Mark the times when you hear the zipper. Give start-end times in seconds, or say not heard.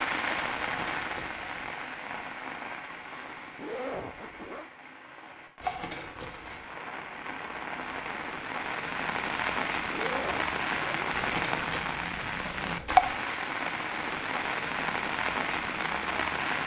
3.5-4.7, 9.9-11.1.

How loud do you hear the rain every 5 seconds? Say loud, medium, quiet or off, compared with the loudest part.
medium, medium, loud, loud.